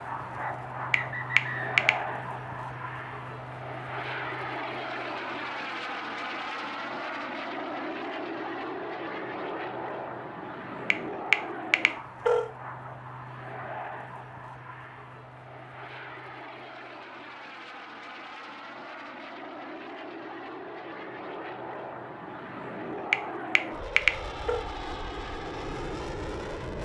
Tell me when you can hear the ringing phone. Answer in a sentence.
The ringing phone can be heard from 0.9 to 1.9 s, from 10.9 to 12.5 s and from 23.1 to 24.6 s.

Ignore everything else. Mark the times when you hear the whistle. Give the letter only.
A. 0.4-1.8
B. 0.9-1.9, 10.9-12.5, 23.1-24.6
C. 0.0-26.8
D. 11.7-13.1
A.